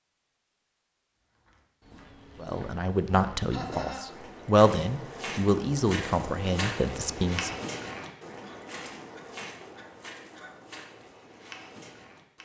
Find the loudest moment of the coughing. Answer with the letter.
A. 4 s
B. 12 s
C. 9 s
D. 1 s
A.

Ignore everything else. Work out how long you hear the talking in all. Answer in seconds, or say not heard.
5 s.